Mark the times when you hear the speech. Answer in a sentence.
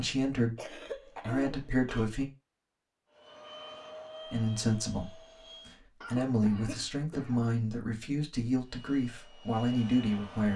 You can hear the speech from 0.0 to 2.2 s and from 4.2 to 10.5 s.